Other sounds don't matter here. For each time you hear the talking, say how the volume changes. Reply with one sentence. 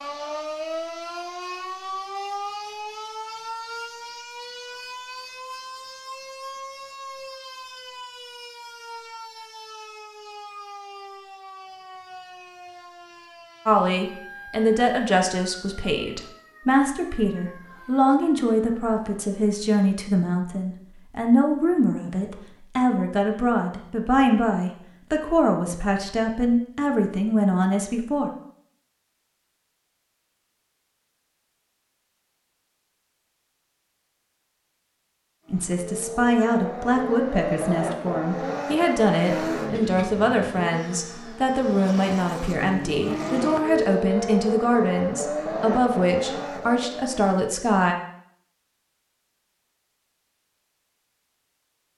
You can hear the talking from 13.7 to 28.3 s, at a steady volume; and from 35.5 to 48.0 s, at a steady volume.